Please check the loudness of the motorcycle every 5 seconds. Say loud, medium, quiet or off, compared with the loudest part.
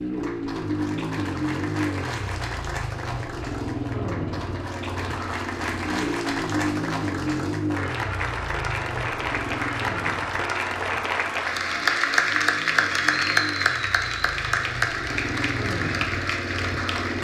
loud, loud, medium, loud.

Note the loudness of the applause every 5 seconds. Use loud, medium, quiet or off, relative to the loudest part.
quiet, medium, loud, medium.